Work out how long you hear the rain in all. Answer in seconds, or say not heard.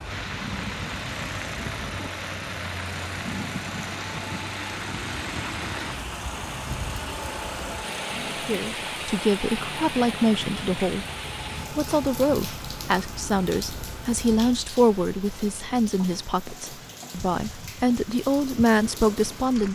20 s.